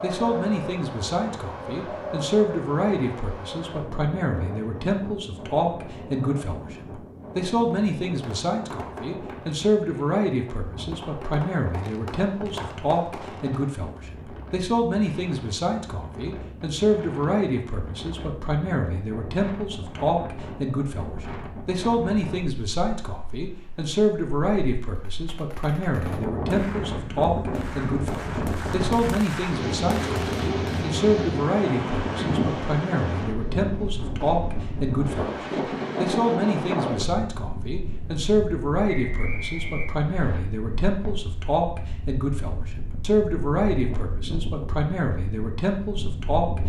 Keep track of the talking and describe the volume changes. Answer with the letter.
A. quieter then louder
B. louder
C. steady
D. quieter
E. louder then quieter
C.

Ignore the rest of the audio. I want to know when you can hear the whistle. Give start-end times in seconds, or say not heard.
38.9-40.4.